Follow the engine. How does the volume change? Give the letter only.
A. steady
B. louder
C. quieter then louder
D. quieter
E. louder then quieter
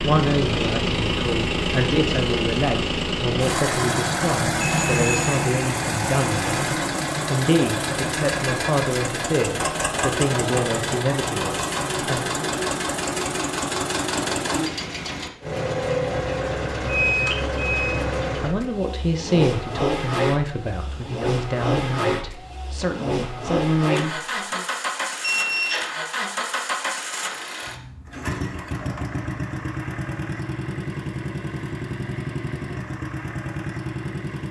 D.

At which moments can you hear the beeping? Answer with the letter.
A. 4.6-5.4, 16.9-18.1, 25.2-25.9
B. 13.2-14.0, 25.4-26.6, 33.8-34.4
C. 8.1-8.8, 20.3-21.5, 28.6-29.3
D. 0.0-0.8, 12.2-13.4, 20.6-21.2
A.